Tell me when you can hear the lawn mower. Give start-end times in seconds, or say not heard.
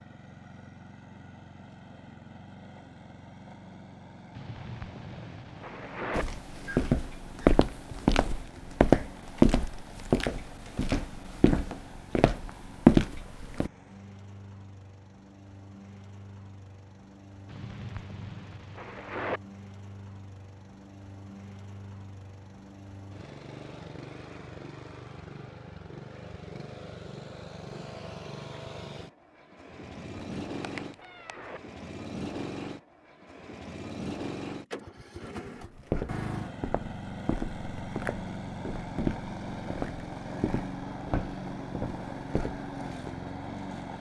0.0-43.9.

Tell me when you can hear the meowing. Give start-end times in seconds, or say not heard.
30.2-31.5.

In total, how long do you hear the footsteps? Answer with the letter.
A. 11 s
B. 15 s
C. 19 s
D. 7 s
B.